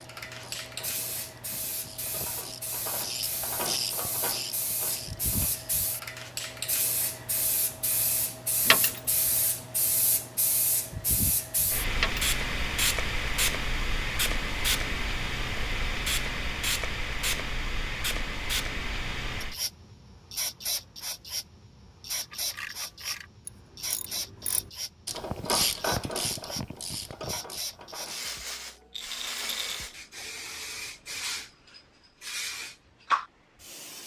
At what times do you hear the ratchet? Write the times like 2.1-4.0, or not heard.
0.2-5.8, 22.1-28.8.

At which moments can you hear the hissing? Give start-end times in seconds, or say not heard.
0.0-34.0.